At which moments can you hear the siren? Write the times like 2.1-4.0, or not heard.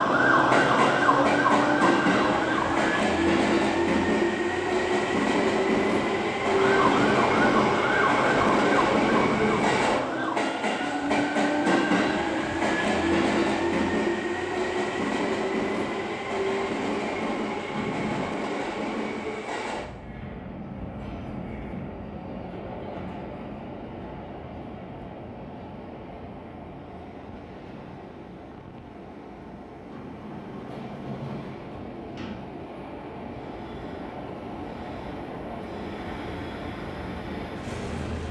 0.0-3.0, 6.4-10.6.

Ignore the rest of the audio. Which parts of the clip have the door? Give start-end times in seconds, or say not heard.
9.1-9.8, 17.7-18.3, 29.9-32.5.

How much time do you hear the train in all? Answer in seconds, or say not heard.
38 s.